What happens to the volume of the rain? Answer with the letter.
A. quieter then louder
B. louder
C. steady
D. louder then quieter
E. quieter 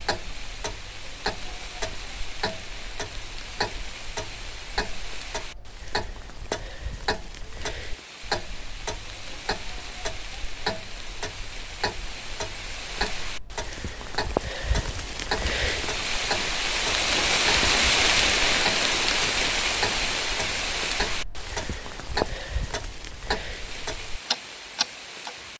D.